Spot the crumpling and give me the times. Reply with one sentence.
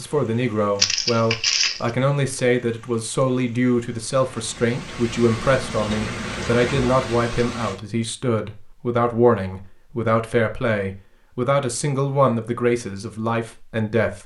The crumpling can be heard from 0.8 to 1.9 s.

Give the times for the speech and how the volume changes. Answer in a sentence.
You can hear the speech from 0.0 to 14.2 s, at a steady volume.